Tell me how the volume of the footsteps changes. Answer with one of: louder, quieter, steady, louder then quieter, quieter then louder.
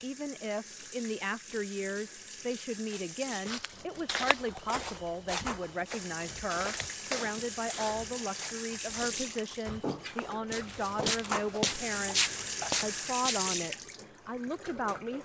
quieter then louder.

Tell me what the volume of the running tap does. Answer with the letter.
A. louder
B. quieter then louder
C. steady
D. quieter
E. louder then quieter
A.